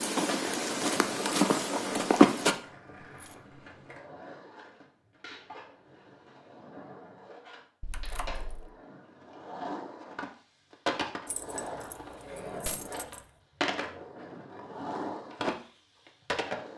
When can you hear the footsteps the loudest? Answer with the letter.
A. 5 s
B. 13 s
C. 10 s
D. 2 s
D.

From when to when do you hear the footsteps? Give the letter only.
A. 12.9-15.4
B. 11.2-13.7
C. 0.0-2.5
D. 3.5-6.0
C.